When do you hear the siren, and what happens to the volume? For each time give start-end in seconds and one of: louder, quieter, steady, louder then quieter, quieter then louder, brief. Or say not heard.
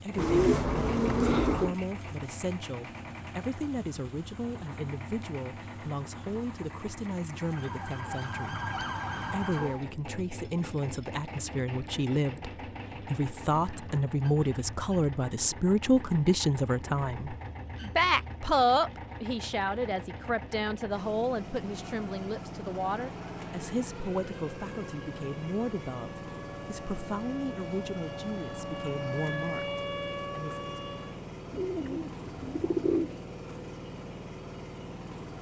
7.4-9.9 brief
21.6-31.2 louder.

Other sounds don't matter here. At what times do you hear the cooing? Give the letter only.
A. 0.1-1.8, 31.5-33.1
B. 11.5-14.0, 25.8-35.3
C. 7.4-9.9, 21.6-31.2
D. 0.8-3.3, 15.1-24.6
A.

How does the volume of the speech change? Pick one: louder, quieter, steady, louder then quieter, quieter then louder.
louder then quieter.